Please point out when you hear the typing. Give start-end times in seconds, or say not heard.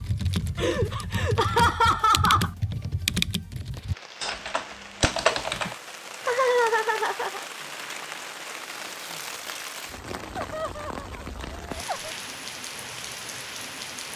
0.0-5.8.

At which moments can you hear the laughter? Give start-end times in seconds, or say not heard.
0.6-2.5, 5.7-7.4, 10.3-12.1.